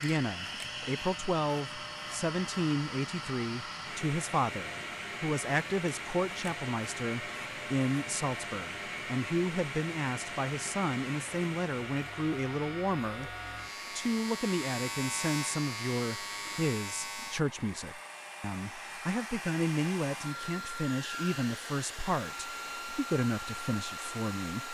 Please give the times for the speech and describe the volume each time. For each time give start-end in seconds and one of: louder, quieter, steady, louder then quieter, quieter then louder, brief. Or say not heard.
0.0-24.6 steady.